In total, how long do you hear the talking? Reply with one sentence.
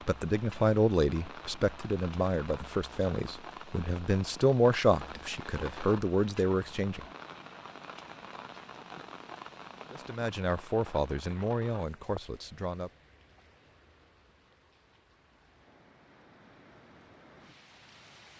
The talking can be heard for 10 seconds in total.